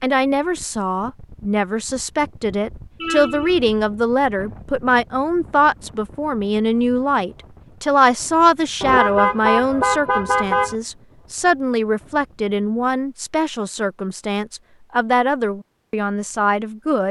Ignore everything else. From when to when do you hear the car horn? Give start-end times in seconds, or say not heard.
3.0-3.6, 8.8-10.8.